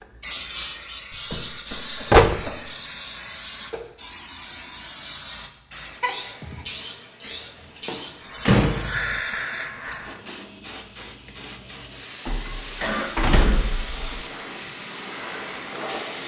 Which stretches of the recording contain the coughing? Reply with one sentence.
You can hear the coughing from 1.1 to 2.7 s, from 6.0 to 6.7 s and from 12.8 to 13.9 s.